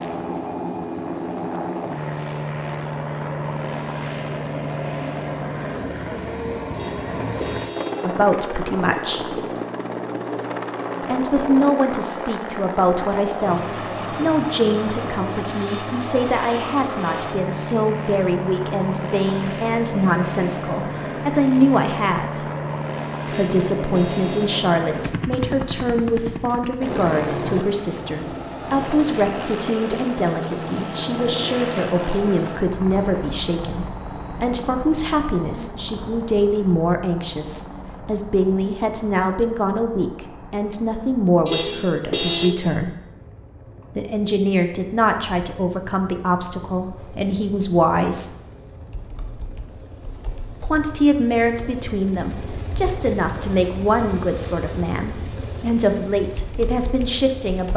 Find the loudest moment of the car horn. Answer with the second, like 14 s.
42 s.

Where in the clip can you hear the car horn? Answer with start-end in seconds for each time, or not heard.
6.7-8.2, 23.2-24.6, 41.5-42.5.